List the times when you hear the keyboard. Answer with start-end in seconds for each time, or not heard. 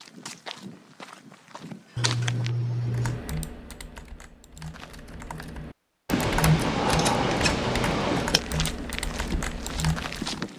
2.8-10.4.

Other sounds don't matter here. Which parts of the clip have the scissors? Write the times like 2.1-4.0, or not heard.
1.9-3.2, 6.0-8.4.